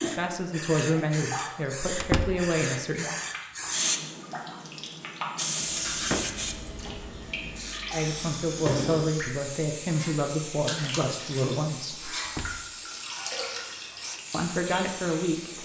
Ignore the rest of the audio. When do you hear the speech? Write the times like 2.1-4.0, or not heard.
0.0-3.1, 7.9-12.1, 14.3-15.6.